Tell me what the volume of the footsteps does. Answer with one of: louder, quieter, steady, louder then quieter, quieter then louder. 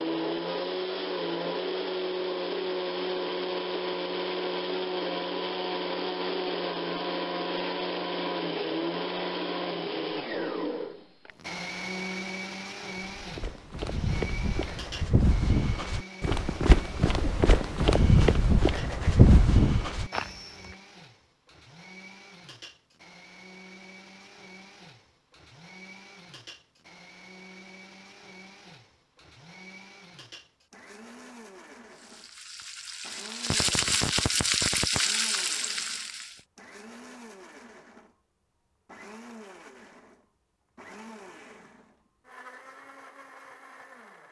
louder.